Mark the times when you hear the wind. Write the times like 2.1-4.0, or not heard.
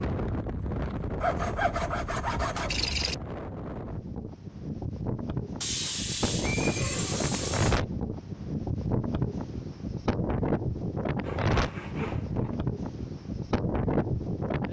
0.0-14.6.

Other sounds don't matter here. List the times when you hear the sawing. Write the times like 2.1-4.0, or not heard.
1.2-3.1, 5.6-7.8, 11.2-12.6.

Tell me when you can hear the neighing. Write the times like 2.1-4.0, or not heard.
6.4-7.1.